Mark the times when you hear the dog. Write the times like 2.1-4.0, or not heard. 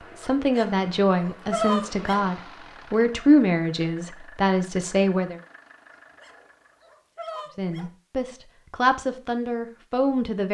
0.2-2.2, 5.9-7.9.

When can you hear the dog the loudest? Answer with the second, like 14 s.
2 s.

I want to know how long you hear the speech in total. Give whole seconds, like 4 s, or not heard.
8 s.